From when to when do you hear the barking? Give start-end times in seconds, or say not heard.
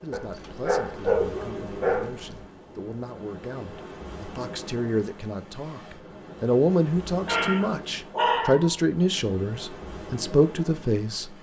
0.1-2.5, 7.2-8.8.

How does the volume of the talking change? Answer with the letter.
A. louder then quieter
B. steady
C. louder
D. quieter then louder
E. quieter
C.